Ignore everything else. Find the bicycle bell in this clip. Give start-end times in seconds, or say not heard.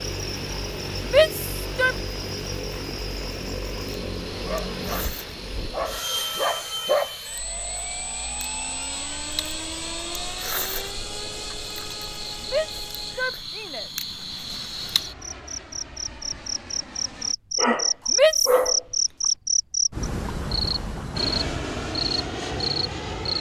not heard.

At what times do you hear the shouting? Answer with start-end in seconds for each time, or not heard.
1.1-1.9, 12.5-13.9, 18.1-18.6.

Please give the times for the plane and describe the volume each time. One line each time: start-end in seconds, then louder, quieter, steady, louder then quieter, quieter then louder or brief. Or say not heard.
0.0-17.4 quieter
21.1-23.3 brief.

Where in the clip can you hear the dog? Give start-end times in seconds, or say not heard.
4.5-7.2, 17.6-19.3.